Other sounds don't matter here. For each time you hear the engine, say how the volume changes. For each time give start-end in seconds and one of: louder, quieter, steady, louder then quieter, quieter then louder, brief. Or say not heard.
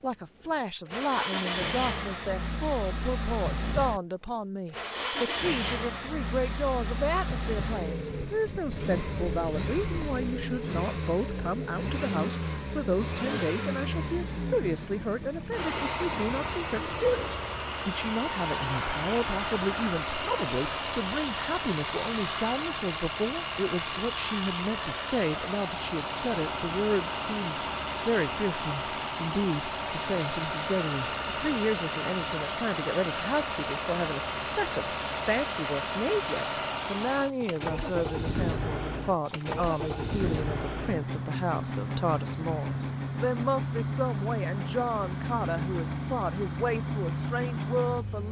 0.0-48.2 steady.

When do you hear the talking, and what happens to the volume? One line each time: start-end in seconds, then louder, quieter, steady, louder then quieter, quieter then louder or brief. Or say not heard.
0.0-48.2 steady.